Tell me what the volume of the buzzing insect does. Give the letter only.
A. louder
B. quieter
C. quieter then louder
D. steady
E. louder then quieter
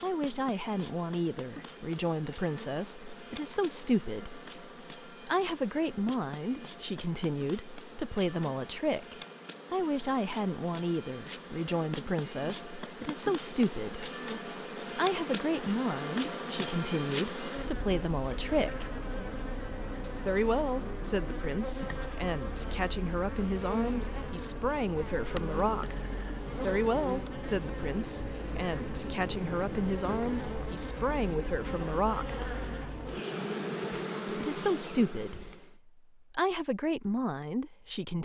A.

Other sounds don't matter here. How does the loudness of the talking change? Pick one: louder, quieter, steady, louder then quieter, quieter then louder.
steady.